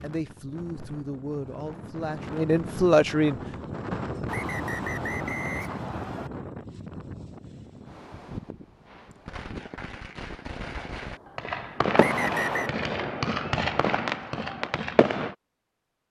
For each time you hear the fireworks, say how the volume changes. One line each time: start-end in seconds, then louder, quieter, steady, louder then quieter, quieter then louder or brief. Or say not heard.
8.8-15.3 louder.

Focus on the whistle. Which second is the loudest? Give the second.
12 s.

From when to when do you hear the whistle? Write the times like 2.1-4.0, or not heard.
4.2-6.3, 11.9-12.8.